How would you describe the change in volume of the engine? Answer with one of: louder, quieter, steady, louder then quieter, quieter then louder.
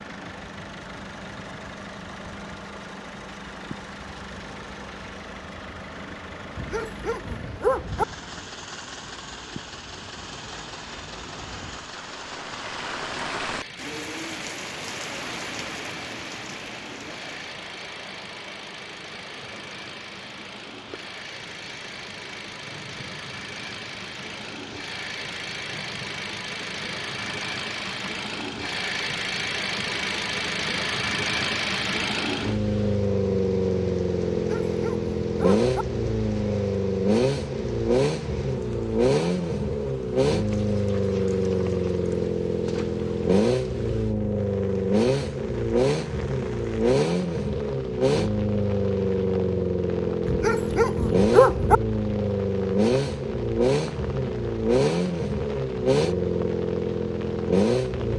louder.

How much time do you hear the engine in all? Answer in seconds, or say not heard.
58 s.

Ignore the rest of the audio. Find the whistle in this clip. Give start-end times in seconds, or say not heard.
not heard.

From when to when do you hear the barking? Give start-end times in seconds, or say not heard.
6.5-8.1, 34.3-35.8, 50.2-51.8.